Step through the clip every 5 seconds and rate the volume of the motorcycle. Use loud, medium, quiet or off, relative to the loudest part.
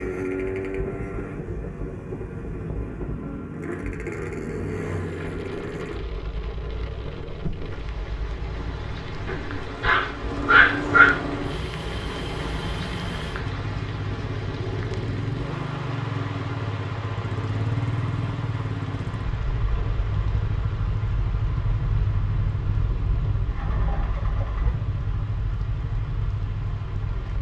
loud, medium, loud, loud, loud, loud.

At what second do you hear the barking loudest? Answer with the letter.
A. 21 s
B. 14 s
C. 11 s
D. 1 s
C.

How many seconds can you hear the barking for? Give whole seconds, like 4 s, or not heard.
2 s.